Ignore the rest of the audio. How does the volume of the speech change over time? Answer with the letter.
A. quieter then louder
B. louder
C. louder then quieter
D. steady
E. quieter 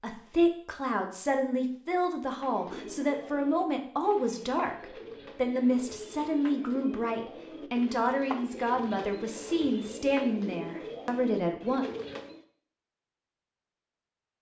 D.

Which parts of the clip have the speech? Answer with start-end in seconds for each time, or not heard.
0.0-11.8.